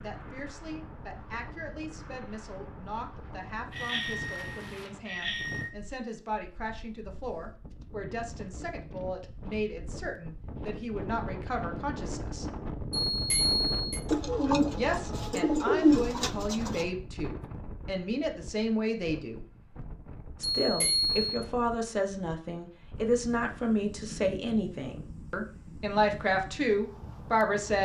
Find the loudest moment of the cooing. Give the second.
16 s.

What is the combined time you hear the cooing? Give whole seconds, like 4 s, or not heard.
3 s.